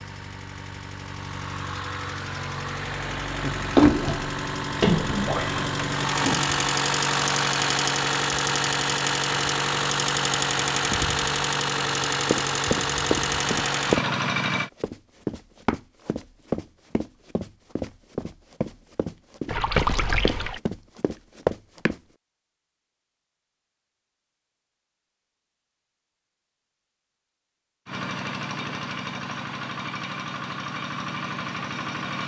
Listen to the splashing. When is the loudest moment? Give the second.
4 s.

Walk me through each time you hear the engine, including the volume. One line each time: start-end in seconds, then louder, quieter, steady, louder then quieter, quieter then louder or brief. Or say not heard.
0.0-14.7 louder
27.9-32.2 steady.